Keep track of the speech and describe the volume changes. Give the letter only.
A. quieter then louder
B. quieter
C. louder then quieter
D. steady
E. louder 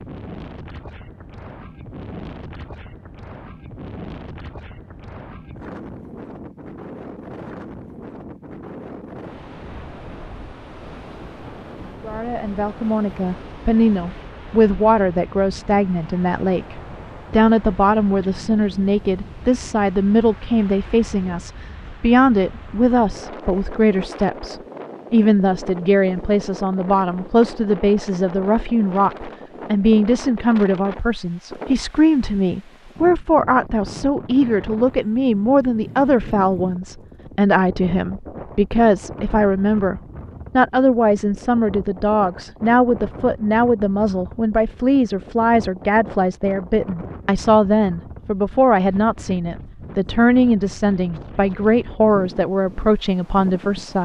D.